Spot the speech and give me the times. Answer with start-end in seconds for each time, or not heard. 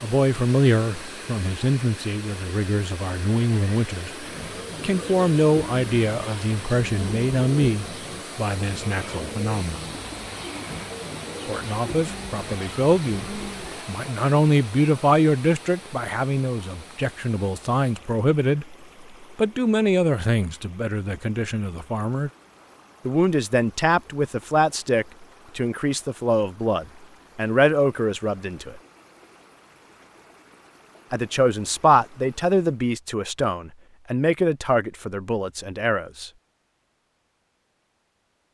0.0-9.9, 11.4-22.3, 23.1-28.8, 31.1-36.3.